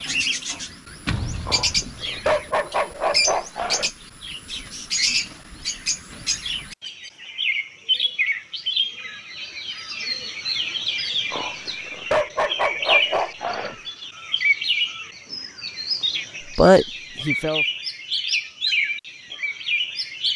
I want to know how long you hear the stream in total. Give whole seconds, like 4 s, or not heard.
not heard.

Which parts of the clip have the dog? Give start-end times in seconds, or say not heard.
1.4-3.9, 11.3-13.8.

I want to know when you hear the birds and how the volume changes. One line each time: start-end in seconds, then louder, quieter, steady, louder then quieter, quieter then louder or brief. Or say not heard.
0.0-20.3 steady.